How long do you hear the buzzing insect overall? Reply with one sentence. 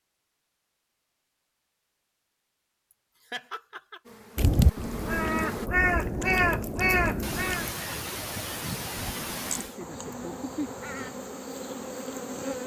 The buzzing insect can be heard for 5 seconds in total.